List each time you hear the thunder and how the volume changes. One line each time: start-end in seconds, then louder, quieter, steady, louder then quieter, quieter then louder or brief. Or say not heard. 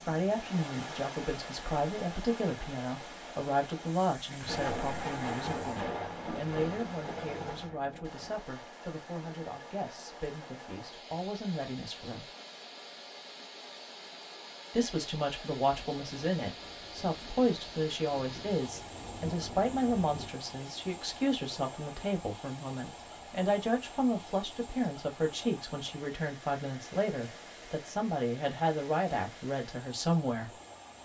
4.2-8.4 quieter
15.8-20.3 louder.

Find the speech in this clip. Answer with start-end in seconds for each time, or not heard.
0.1-12.3, 14.7-30.6.